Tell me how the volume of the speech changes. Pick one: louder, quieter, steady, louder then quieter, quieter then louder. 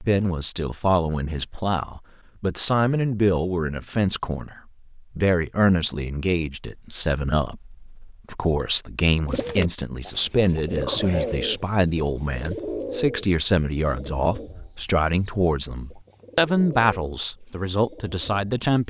steady.